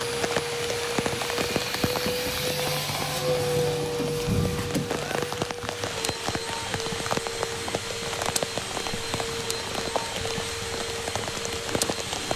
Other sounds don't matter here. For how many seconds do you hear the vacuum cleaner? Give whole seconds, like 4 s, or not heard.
12 s.